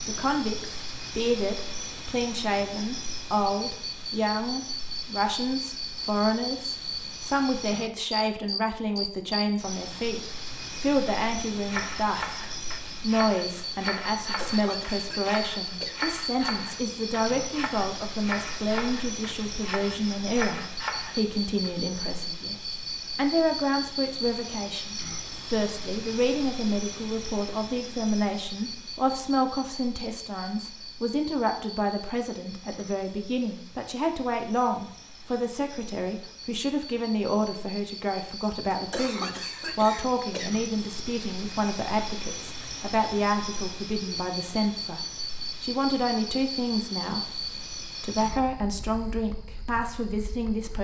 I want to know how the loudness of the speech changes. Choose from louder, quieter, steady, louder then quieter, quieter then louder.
steady.